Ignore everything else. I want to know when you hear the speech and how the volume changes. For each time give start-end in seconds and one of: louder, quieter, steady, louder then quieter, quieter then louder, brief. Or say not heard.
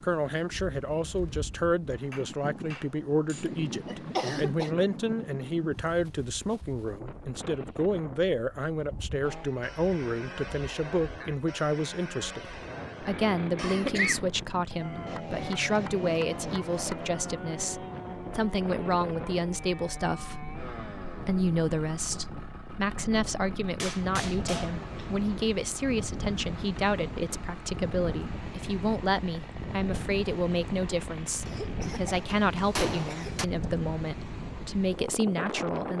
0.0-35.9 steady.